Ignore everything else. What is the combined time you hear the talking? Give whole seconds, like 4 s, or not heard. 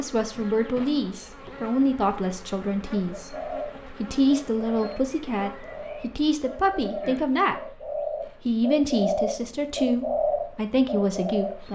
11 s.